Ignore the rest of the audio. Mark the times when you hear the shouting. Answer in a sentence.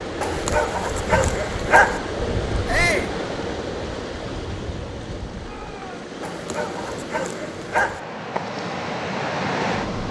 The shouting can be heard from 2.6 to 3.1 s and from 5.4 to 6.1 s.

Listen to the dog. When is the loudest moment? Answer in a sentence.
The loudest moment of the dog is at 2 seconds.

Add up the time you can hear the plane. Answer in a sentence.
You can't hear the plane here.